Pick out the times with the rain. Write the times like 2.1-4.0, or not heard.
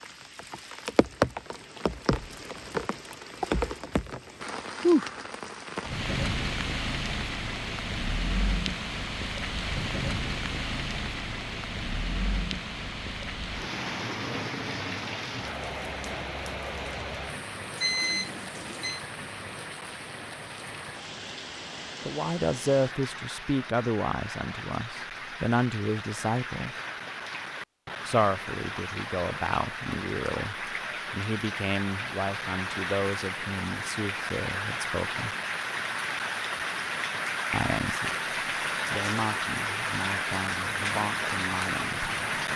0.0-42.5.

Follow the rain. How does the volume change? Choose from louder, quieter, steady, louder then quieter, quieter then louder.
quieter then louder.